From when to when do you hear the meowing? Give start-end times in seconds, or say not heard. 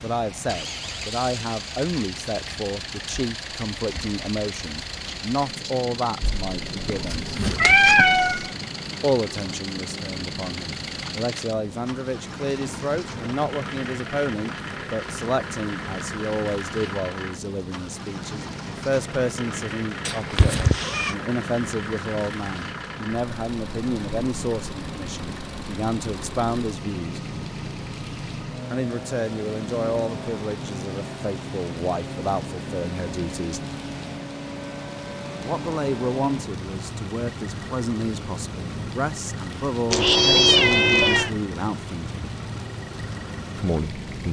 6.2-8.5, 20.1-21.1, 39.9-41.3.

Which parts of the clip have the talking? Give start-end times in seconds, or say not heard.
0.0-7.3, 9.0-27.2, 28.7-33.6, 35.4-42.1, 43.5-44.2.